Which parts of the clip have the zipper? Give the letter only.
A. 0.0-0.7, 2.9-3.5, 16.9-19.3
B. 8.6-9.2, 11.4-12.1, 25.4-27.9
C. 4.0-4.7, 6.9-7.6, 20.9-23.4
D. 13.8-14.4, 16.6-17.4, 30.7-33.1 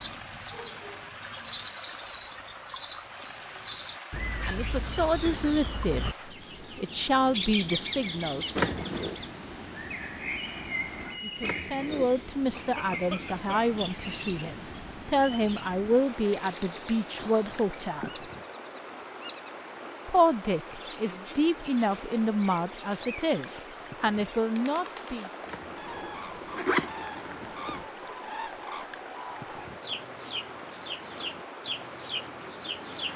B.